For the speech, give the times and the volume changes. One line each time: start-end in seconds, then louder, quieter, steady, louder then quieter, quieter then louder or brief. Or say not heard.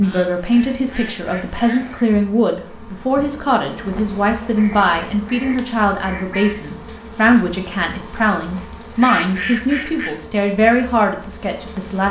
0.0-12.0 steady.